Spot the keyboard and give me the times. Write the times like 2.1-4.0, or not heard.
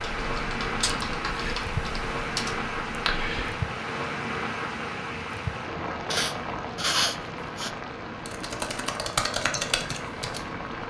0.0-3.6, 8.2-10.6.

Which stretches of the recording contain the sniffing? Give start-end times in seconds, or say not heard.
0.8-1.6, 6.1-7.7.